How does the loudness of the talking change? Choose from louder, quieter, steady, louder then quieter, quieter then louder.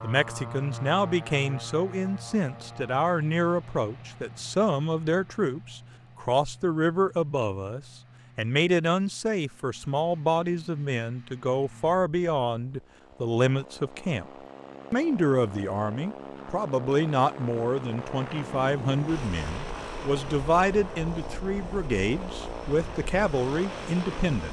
steady.